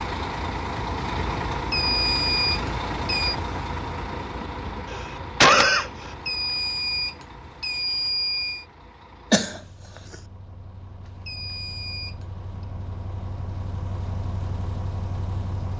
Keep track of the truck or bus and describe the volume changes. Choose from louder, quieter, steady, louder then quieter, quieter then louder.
quieter then louder.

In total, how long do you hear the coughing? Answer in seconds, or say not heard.
2 s.